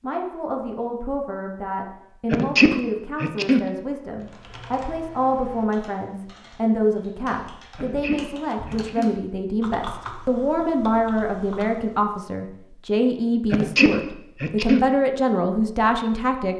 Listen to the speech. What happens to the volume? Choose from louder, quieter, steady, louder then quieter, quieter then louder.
louder.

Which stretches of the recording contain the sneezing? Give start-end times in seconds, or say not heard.
2.3-3.7, 7.8-9.2, 13.5-14.9.